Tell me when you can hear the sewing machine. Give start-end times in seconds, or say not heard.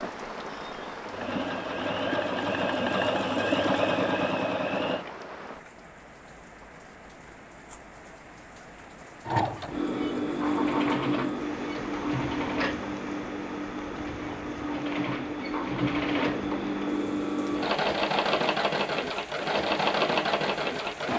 0.0-5.0, 9.2-21.1.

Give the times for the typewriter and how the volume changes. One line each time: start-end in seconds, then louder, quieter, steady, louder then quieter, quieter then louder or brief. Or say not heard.
not heard.